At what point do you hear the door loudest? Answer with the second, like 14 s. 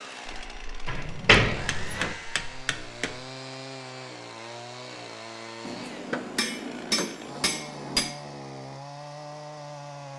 1 s.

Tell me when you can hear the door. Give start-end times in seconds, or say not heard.
0.8-2.1, 6.0-7.3.